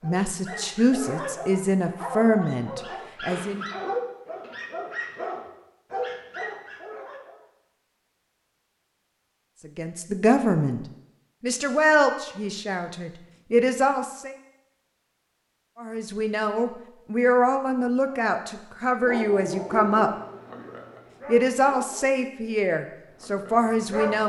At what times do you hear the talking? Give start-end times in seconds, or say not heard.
0.0-3.6, 9.7-10.8, 11.4-14.3, 15.8-20.1, 21.2-24.2.